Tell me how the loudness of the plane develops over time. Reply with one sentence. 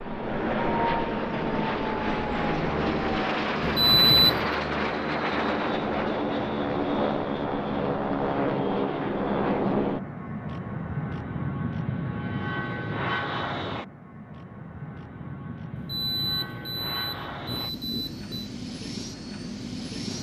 The loudness of the plane goes down.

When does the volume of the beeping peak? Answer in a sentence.
The loudest moment of the beeping is at 4 seconds.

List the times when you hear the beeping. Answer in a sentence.
The beeping can be heard from 3.6 to 4.5 s and from 15.8 to 18.5 s.